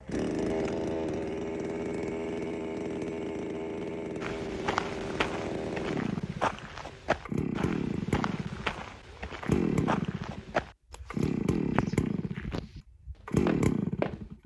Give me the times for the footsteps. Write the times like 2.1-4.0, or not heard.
4.2-12.8, 13.4-14.2.